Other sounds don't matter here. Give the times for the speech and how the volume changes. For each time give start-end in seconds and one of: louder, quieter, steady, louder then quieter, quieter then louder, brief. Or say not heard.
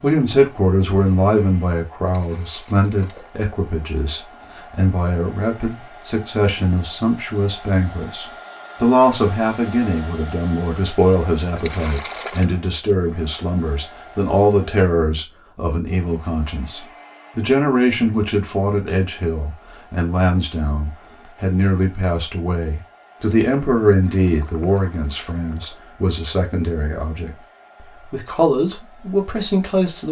0.0-30.0 steady.